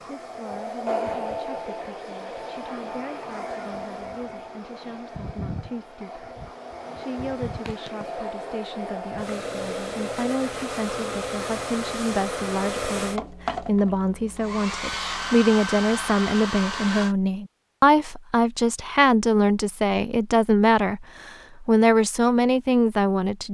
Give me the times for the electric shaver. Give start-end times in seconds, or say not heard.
not heard.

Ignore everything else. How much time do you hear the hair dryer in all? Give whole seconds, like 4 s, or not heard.
17 s.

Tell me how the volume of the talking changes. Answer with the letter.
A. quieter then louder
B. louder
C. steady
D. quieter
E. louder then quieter
B.